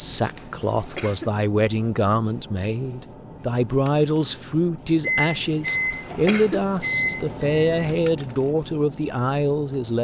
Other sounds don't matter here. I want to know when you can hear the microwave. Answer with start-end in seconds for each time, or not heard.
5.0-7.9.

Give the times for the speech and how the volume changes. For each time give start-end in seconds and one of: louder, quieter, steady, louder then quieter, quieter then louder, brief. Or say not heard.
0.0-10.0 steady.